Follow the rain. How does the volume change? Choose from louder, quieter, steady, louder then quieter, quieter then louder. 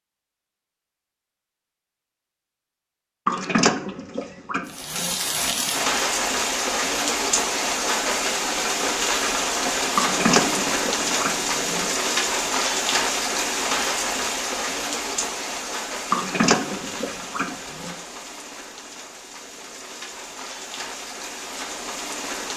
quieter.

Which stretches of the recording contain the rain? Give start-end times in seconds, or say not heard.
4.7-22.5.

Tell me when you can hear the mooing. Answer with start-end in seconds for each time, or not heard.
3.2-5.2, 9.9-11.8, 16.1-17.9.